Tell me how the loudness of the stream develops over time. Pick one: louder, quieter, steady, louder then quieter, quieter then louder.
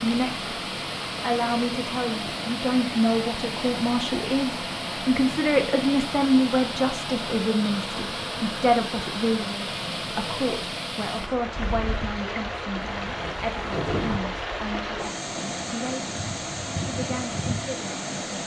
steady.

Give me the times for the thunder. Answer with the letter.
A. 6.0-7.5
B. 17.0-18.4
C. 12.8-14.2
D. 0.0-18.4
C.